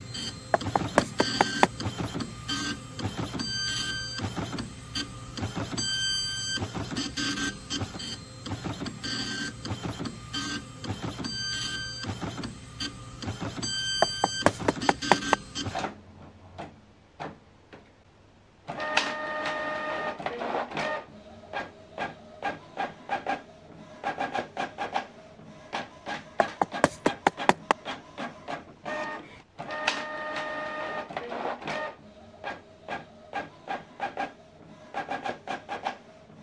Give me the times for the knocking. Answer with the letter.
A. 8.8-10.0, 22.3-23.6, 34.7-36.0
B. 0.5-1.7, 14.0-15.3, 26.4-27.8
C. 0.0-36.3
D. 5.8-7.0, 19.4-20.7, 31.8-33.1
B.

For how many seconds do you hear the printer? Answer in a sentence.
You can hear the printer for 36 seconds altogether.